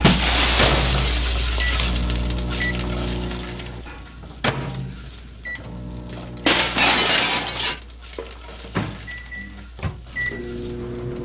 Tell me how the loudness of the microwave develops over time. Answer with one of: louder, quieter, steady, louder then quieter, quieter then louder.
quieter then louder.